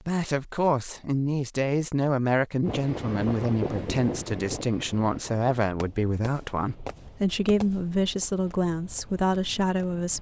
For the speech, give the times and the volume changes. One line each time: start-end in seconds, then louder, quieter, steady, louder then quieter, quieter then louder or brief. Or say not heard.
0.1-10.1 steady.